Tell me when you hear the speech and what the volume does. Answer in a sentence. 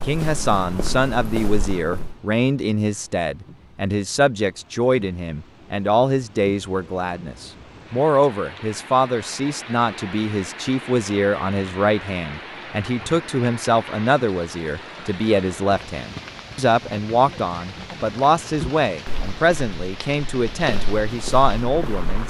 You can hear the speech from 0.0 to 22.2 s, at a steady volume.